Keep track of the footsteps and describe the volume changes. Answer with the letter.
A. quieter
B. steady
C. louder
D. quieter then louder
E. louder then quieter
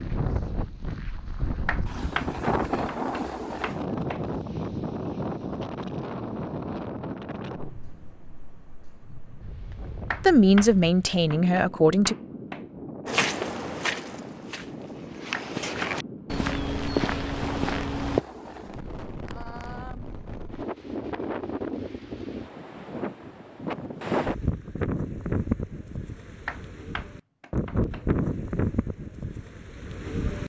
D.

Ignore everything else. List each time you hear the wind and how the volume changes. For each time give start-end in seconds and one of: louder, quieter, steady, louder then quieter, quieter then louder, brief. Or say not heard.
0.0-30.4 quieter then louder.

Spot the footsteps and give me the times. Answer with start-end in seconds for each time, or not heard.
13.1-18.2.